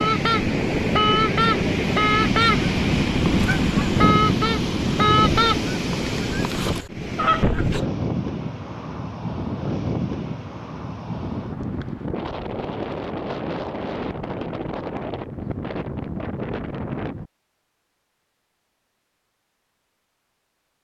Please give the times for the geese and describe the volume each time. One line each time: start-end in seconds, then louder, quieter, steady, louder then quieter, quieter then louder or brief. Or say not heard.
0.0-7.7 quieter.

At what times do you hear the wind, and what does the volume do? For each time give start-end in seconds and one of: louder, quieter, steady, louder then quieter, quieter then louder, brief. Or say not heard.
0.0-17.3 quieter.